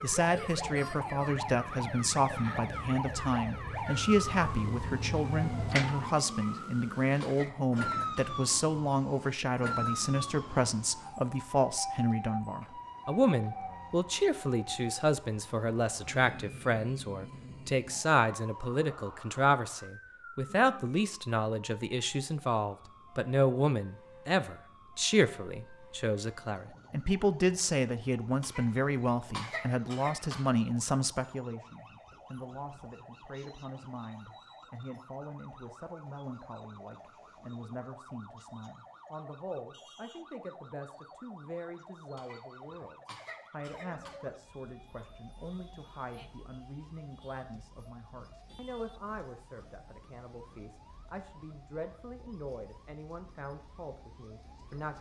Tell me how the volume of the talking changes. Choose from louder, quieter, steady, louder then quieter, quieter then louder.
quieter.